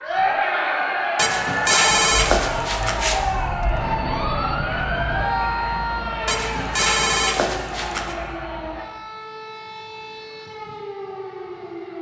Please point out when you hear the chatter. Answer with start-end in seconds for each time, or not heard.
0.0-8.8.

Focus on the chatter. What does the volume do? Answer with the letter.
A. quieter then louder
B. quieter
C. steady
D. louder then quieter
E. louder
B.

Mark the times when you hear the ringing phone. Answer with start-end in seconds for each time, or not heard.
1.1-3.2, 6.2-8.2.